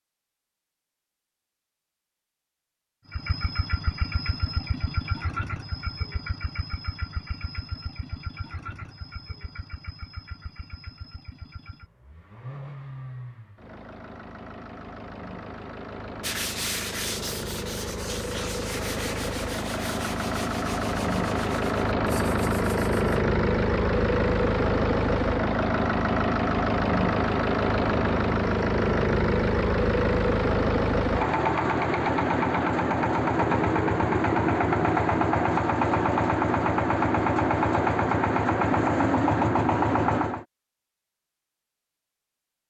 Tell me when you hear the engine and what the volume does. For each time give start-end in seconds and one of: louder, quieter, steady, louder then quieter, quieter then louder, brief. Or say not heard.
3.0-40.5 louder.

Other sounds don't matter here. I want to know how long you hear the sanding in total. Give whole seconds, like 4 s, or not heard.
7 s.